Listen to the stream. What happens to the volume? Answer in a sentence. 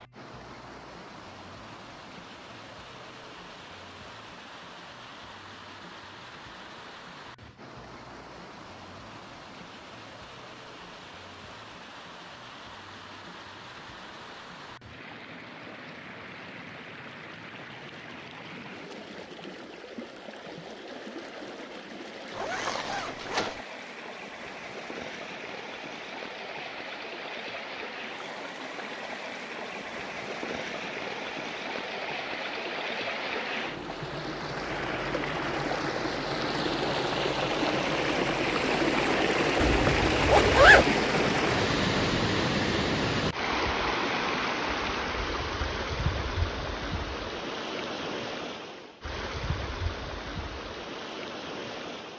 The volume of the stream goes up.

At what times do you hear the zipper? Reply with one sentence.
You can hear the zipper from 22.4 to 23.6 s and from 39.6 to 40.9 s.